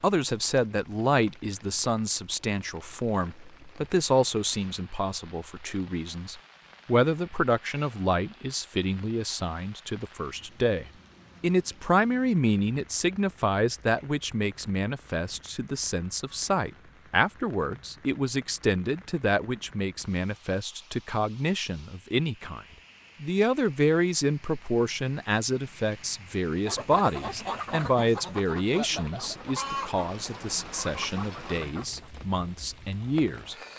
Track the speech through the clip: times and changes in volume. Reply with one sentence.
The speech can be heard from 0.0 to 33.5 s, at a steady volume.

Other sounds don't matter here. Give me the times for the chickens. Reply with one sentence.
The chickens can be heard from 26.6 to 32.1 s.